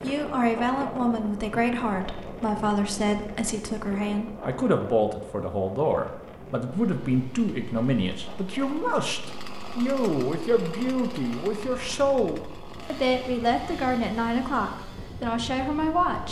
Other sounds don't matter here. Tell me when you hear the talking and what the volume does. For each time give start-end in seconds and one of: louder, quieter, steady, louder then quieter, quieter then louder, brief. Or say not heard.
0.0-16.2 steady.